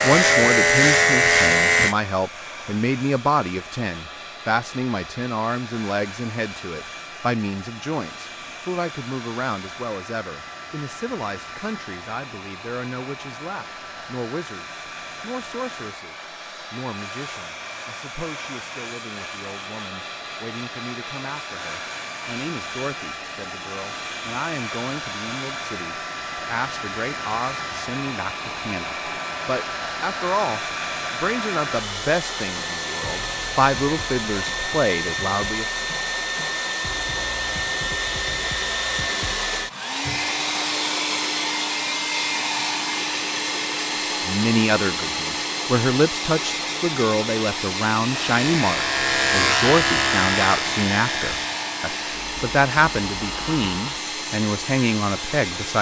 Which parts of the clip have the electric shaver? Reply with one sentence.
The electric shaver can be heard from 0.0 to 1.9 s and from 48.0 to 55.7 s.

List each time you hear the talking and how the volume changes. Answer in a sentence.
The talking can be heard from 0.0 to 35.6 s, getting quieter then louder; and from 44.2 to 55.7 s, at a steady volume.